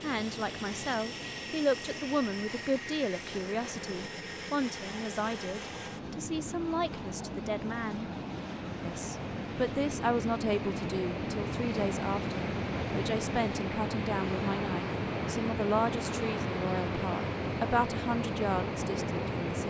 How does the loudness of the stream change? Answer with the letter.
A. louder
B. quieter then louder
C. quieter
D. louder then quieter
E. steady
A.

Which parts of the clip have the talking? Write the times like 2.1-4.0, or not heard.
0.0-8.1, 8.8-19.6.